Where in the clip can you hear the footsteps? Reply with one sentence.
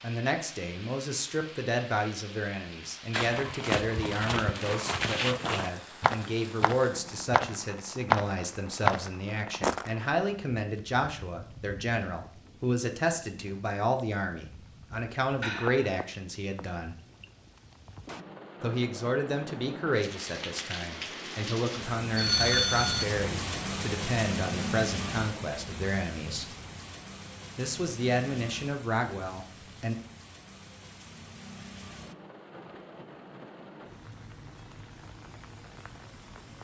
You can hear the footsteps from 3.1 to 9.9 s.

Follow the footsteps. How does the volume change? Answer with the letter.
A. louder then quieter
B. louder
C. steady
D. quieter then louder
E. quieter
B.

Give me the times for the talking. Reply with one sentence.
The talking can be heard from 0.0 to 16.9 s, from 18.6 to 26.5 s and from 27.6 to 29.9 s.